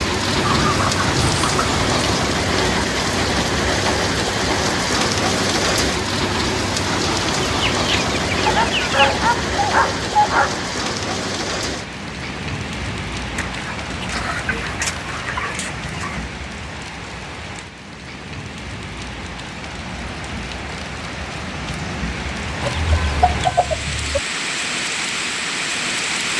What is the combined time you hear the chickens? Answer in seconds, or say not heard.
8 s.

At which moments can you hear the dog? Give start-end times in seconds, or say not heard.
8.4-10.6.